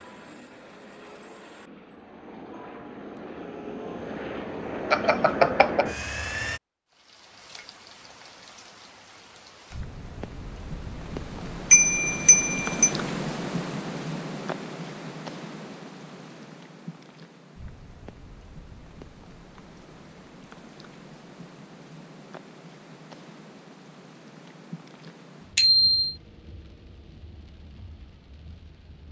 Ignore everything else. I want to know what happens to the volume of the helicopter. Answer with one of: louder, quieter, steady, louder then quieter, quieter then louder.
louder.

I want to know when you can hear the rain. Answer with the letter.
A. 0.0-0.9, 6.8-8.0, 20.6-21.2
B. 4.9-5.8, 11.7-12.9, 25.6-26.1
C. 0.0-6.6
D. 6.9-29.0
D.